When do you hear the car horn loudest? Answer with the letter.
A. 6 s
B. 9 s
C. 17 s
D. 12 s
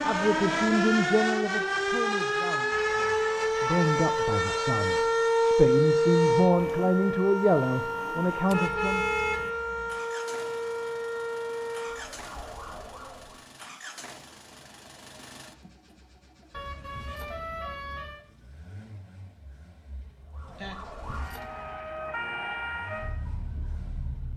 B.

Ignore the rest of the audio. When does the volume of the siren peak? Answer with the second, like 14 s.
6 s.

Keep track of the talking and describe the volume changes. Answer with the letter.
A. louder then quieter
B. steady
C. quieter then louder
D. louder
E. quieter
C.